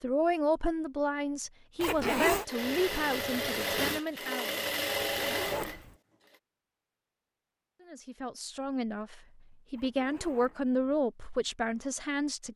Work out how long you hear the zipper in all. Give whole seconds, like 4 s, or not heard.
3 s.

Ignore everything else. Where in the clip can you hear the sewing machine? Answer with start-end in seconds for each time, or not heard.
2.4-6.3.